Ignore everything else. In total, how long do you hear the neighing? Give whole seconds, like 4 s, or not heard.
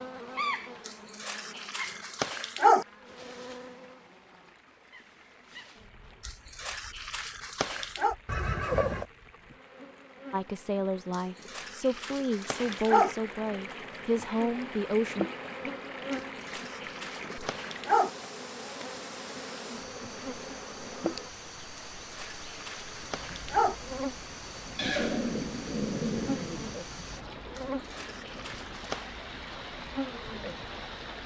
3 s.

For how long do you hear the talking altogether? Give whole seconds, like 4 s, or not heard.
5 s.